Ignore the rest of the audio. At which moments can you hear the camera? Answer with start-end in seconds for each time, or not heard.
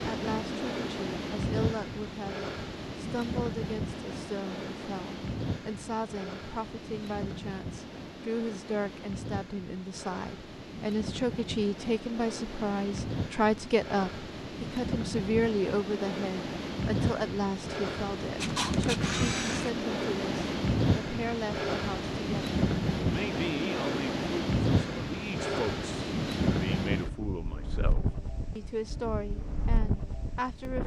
18.4-19.7.